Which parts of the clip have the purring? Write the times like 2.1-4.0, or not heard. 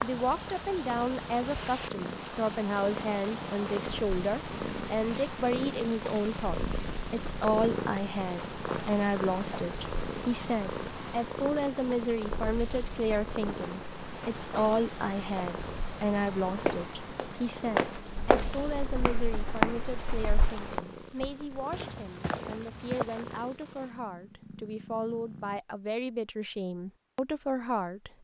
0.0-25.6.